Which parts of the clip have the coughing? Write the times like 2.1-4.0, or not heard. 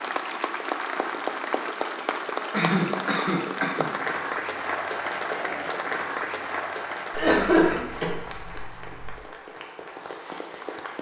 2.5-3.9, 7.1-9.2.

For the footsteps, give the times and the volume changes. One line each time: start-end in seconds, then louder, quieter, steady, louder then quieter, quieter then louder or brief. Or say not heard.
not heard.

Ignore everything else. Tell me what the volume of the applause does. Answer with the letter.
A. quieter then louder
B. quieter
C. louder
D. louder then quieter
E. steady
B.